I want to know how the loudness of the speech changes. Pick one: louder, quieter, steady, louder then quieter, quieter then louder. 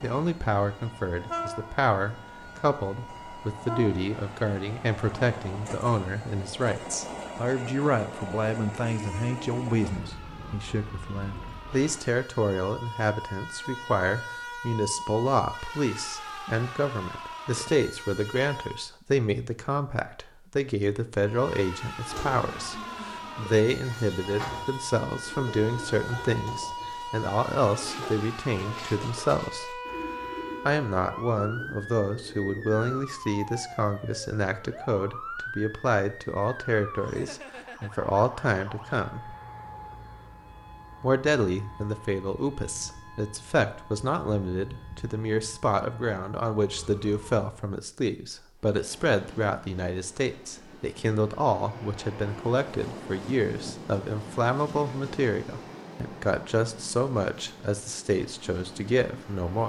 steady.